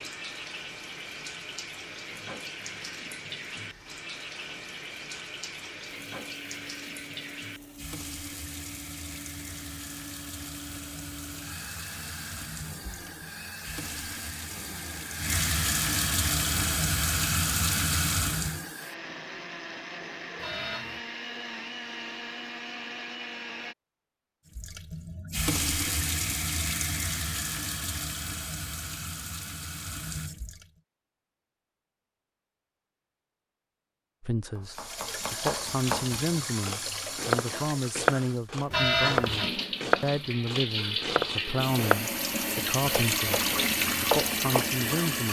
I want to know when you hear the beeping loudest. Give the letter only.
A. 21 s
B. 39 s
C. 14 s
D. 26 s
B.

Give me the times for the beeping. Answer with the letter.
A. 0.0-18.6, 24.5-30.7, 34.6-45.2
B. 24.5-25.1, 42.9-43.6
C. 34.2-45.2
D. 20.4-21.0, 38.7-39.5
D.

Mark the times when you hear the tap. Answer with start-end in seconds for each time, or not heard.
0.0-18.6, 24.5-30.7, 34.6-45.2.